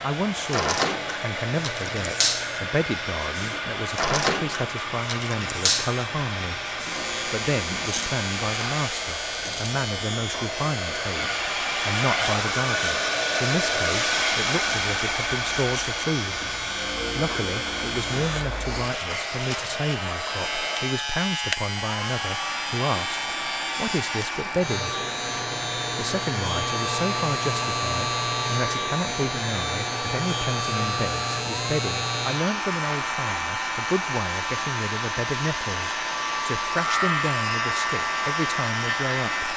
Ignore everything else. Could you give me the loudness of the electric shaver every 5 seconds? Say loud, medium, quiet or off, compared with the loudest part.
loud, loud, medium, loud, loud, loud, loud, loud.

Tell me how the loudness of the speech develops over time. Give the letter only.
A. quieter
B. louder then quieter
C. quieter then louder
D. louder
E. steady
E.